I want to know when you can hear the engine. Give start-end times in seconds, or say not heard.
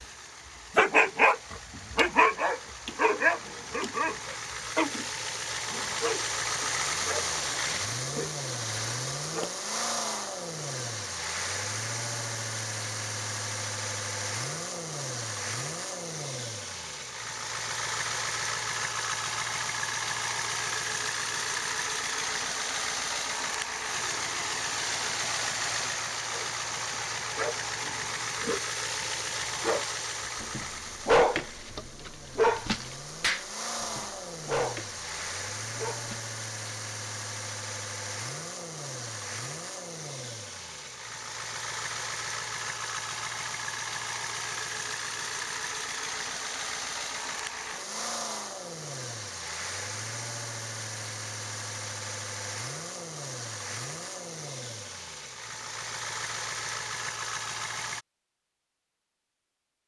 0.0-58.0.